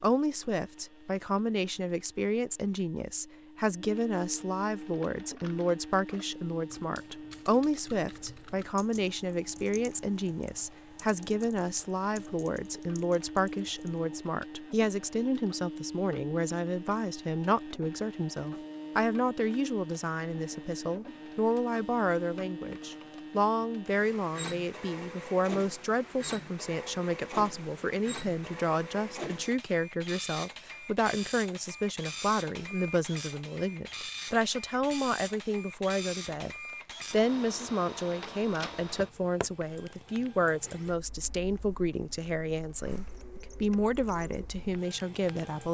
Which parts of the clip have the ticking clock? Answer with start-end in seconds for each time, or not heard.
not heard.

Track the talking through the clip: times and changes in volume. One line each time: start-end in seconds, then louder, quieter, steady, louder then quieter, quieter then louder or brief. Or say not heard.
0.0-45.6 steady.